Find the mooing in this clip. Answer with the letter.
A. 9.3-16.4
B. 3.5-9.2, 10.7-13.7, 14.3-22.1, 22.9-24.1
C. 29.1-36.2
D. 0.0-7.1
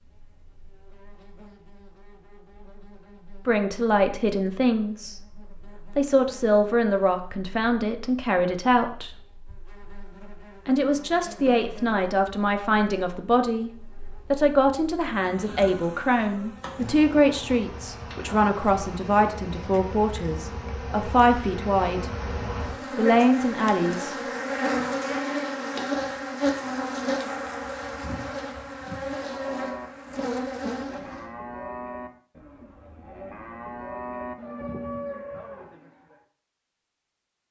C.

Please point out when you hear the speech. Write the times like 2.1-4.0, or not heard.
3.5-9.2, 10.7-13.7, 14.3-22.1, 22.9-24.1.